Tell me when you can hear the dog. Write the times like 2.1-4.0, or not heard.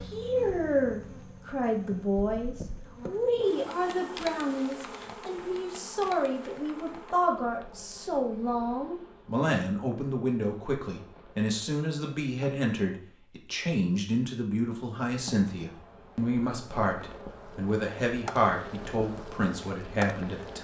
not heard.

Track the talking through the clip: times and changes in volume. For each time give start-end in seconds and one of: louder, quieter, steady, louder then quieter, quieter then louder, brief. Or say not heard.
0.1-20.5 steady.